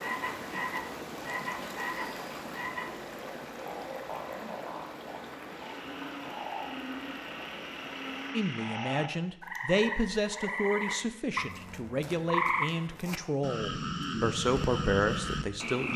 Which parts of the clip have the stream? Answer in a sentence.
The stream can be heard from 0.0 to 8.3 s.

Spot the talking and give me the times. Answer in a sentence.
The talking can be heard from 8.3 to 15.9 s.